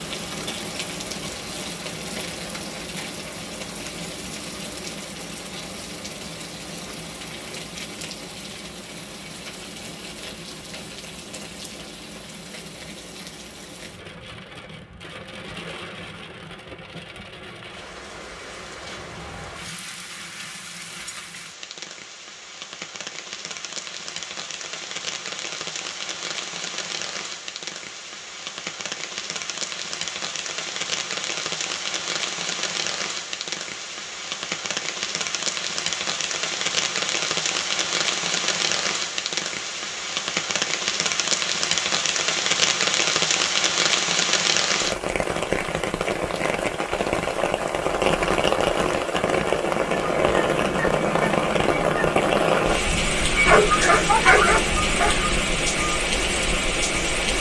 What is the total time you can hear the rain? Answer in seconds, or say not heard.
57 s.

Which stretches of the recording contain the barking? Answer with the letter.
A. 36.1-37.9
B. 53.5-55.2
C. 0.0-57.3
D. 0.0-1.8
B.